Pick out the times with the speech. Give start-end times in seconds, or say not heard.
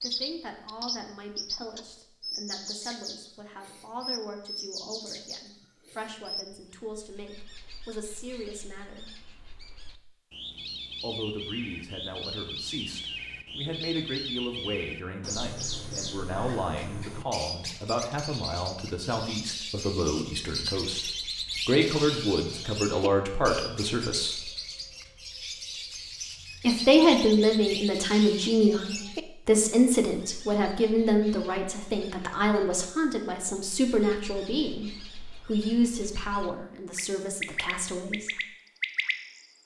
0.0-9.1, 11.0-24.5, 26.6-38.4.